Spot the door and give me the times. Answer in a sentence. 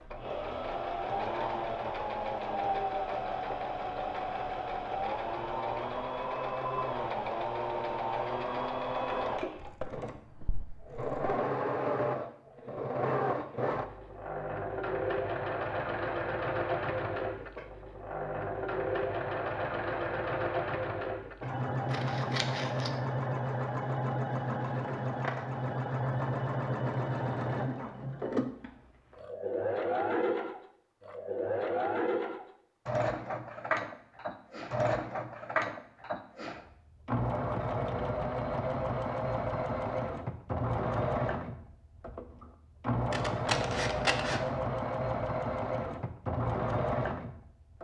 You can't hear the door here.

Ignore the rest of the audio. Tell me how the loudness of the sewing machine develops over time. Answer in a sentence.
The loudness of the sewing machine stays about the same.